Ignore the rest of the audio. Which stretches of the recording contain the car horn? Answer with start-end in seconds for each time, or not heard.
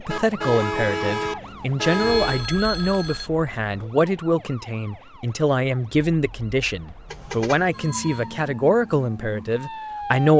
0.1-2.5, 7.0-7.8.